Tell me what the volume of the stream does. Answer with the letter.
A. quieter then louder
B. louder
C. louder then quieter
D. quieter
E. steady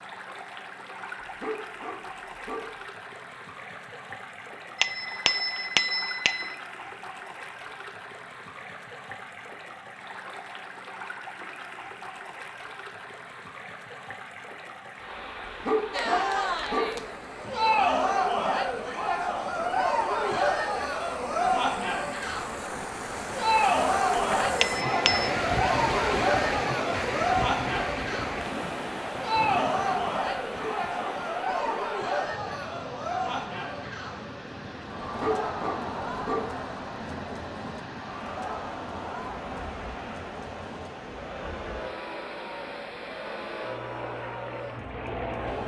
C.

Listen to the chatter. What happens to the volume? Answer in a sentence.
The volume of the chatter goes down.